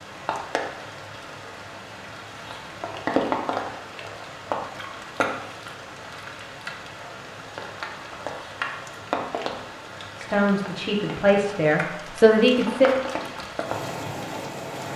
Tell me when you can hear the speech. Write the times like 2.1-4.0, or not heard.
10.2-12.9.